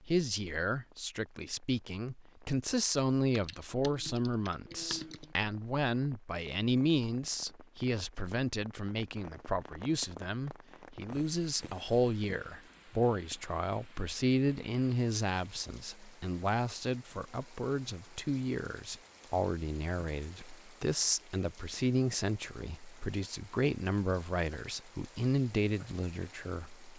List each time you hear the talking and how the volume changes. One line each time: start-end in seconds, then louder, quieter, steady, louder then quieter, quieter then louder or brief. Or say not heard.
0.1-26.9 steady.